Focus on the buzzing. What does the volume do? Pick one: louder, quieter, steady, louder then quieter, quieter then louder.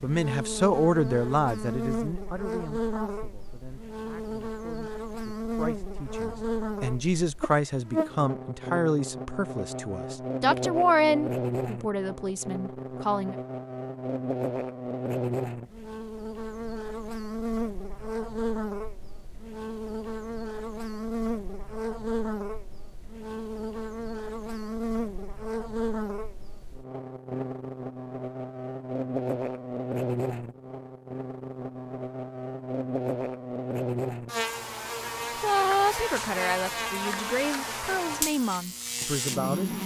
steady.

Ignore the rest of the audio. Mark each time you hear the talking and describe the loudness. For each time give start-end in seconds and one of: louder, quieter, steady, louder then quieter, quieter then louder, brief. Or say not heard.
0.0-13.3 quieter then louder
35.2-39.7 quieter.